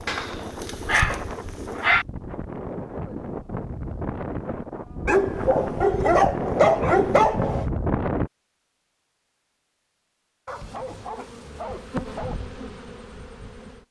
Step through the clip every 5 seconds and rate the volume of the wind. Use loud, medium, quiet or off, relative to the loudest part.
medium, loud, off.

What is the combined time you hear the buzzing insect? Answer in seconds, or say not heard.
5 s.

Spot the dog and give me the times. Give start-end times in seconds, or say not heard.
0.1-2.0, 5.0-7.7, 10.4-12.4.